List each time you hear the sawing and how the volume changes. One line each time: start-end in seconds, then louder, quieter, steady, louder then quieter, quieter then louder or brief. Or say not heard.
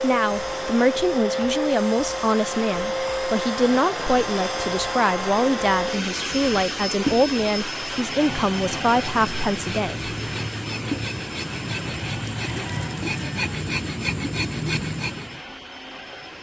8.0-15.4 louder.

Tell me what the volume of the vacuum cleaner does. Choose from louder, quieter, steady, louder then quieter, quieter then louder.
quieter.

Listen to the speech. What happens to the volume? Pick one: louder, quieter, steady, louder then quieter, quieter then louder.
steady.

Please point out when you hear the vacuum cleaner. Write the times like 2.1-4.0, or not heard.
0.0-16.3.